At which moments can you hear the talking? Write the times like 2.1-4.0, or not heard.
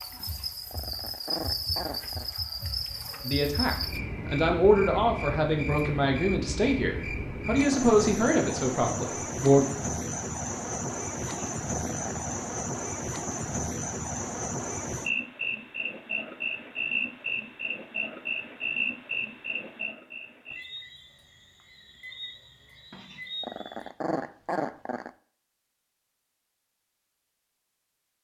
3.2-9.7.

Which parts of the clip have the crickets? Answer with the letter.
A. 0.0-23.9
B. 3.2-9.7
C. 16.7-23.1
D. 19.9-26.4
A.